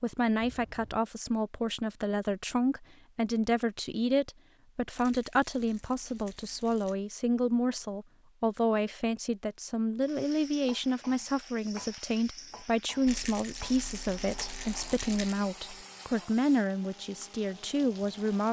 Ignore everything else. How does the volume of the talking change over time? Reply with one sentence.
The loudness of the talking stays about the same.